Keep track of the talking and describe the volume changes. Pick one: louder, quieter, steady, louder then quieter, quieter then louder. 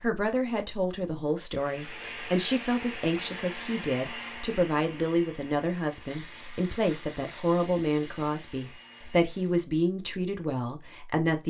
steady.